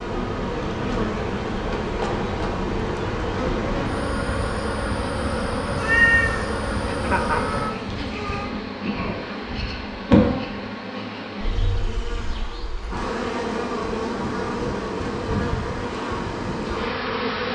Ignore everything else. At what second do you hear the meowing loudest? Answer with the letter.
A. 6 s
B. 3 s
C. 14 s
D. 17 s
A.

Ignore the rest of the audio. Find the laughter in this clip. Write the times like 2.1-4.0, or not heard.
6.8-7.4.